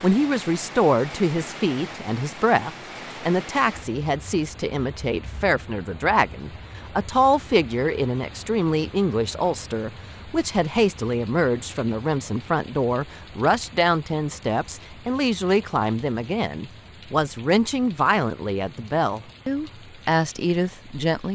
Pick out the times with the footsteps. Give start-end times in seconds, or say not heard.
not heard.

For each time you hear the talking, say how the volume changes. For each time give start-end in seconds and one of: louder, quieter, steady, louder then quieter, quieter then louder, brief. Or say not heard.
0.0-21.3 steady.